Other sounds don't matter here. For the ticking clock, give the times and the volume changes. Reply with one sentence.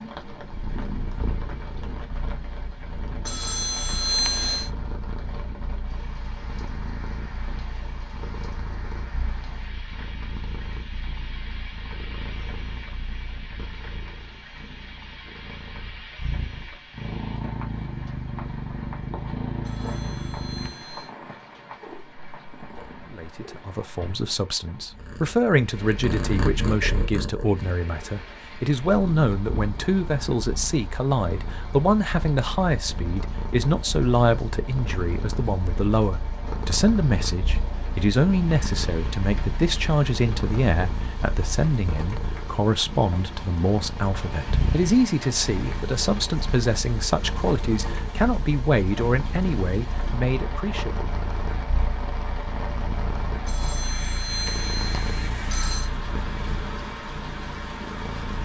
The ticking clock can't be heard in this clip.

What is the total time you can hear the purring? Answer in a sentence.
You can hear the purring for 58 seconds altogether.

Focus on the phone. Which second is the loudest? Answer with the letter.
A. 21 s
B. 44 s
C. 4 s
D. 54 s
C.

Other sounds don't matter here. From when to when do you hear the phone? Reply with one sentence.
The phone can be heard from 3.2 to 4.7 s, from 19.6 to 21.1 s and from 53.5 to 55.9 s.